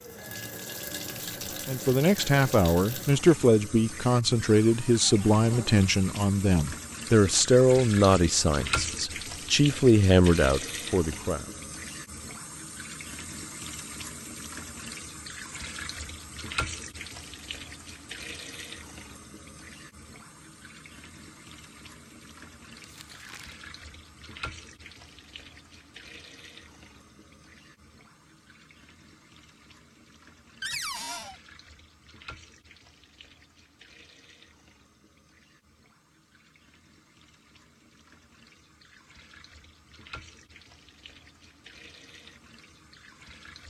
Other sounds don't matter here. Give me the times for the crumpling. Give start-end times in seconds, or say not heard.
22.7-23.6.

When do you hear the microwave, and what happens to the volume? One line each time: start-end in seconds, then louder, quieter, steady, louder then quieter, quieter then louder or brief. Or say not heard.
not heard.